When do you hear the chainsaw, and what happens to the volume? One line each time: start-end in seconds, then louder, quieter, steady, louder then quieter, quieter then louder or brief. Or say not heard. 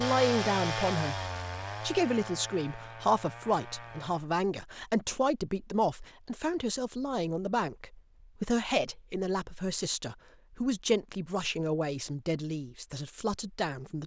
0.0-4.3 quieter.